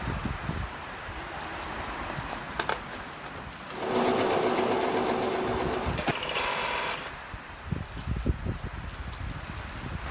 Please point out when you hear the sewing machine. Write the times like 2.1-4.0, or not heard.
3.7-7.1.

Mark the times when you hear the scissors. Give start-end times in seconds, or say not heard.
2.5-4.0.